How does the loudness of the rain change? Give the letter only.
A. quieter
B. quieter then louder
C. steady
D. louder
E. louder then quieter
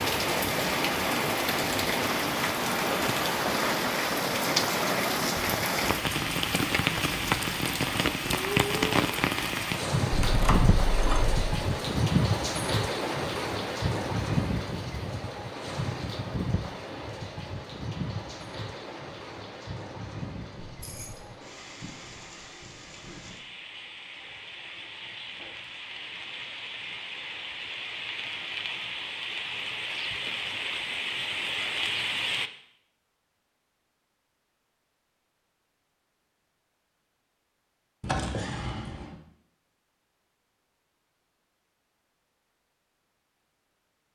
B.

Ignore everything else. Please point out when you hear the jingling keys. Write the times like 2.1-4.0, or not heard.
10.1-11.3, 20.6-21.3, 38.0-39.2.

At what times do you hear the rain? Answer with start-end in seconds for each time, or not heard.
0.0-32.5.